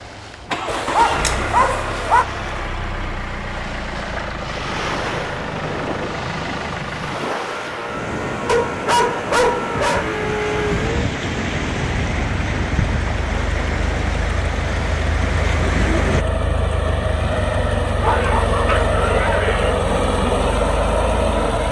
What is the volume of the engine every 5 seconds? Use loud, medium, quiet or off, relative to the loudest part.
medium, medium, medium, loud, loud.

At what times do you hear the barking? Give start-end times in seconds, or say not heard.
0.7-2.2, 8.4-10.1, 18.0-19.8.